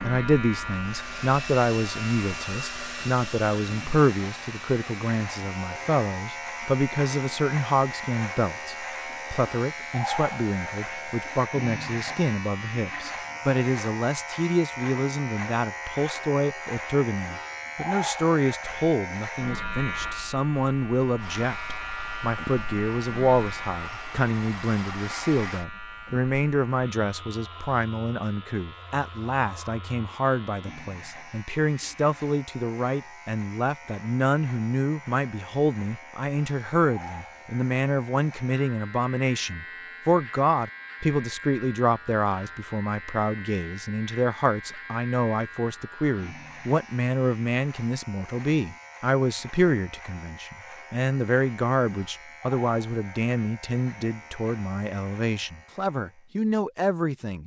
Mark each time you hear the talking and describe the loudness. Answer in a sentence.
The talking can be heard from 0.0 to 57.4 s, at a steady volume.